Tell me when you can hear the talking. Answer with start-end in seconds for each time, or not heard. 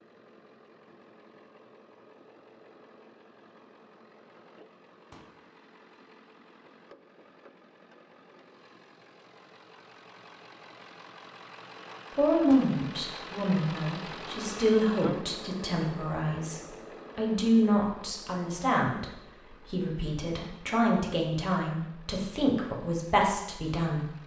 12.2-24.1.